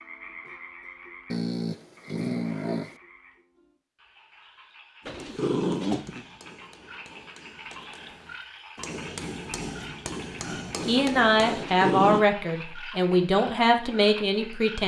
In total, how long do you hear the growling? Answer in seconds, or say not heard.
4 s.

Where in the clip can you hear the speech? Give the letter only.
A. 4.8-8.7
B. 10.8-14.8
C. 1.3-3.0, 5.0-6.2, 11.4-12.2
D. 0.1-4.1
B.